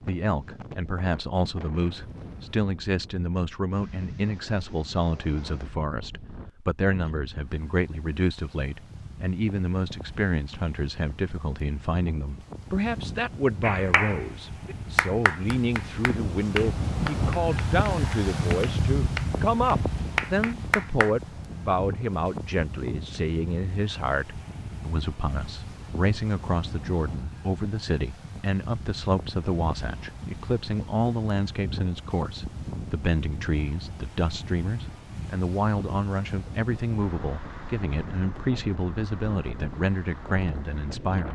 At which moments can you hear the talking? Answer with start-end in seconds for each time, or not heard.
0.1-41.3.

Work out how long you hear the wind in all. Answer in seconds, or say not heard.
41 s.